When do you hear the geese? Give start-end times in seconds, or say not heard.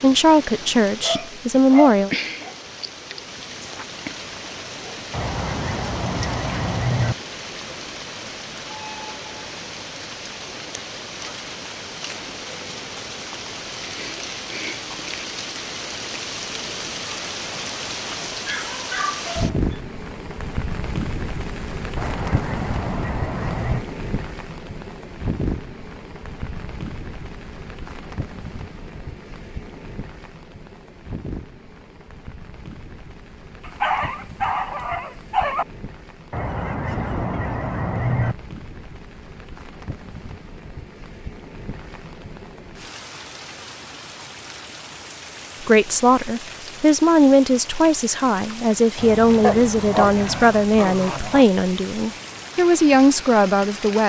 5.1-7.2, 21.9-23.9, 36.3-38.4, 49.0-50.5.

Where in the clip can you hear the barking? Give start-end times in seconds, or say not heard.
1.0-2.5, 18.4-19.6, 33.6-35.6, 49.4-51.5.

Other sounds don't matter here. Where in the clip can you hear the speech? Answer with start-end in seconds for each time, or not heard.
0.0-2.1, 45.6-54.0.